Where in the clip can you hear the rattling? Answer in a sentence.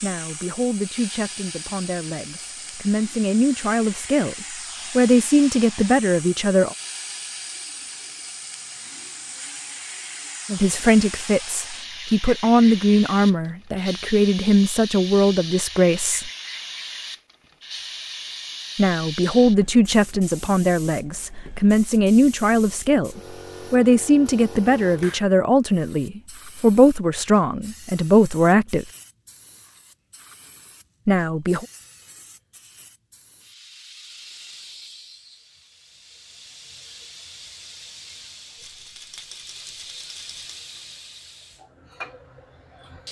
You can hear the rattling from 38.5 to 40.5 s.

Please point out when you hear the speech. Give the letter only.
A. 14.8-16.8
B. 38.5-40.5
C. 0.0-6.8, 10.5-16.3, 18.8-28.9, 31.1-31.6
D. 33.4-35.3
C.